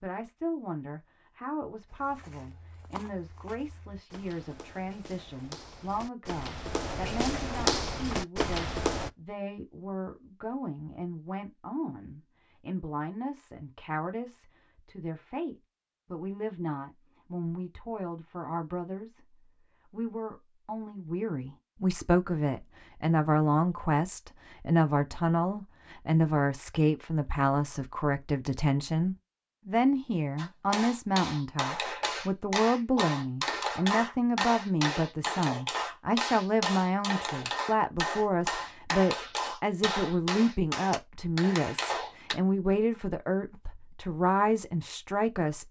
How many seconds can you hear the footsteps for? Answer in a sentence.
You can hear the footsteps for 7 seconds altogether.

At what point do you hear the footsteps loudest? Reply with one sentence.
The loudest moment of the footsteps is at 8 seconds.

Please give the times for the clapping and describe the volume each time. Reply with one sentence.
The clapping can be heard from 30.4 to 42.4 s, at a steady volume.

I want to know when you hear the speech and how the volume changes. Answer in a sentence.
You can hear the speech from 0.0 to 45.6 s, getting louder.